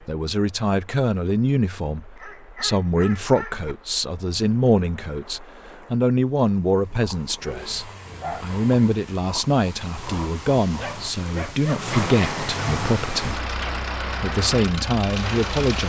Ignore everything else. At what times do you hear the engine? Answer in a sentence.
The engine can be heard from 7.5 to 15.8 s.